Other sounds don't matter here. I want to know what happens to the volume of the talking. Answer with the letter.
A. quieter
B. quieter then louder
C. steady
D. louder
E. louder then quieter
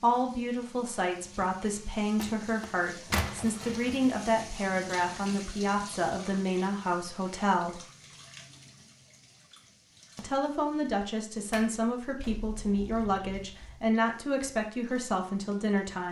C.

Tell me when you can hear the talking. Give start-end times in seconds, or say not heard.
0.0-7.8, 10.2-16.0.